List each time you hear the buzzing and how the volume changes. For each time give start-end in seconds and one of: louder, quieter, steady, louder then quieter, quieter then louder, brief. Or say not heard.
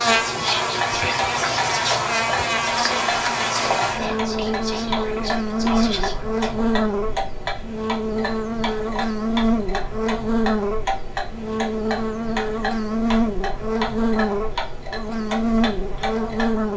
0.0-16.7 steady.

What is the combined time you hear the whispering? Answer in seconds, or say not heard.
7 s.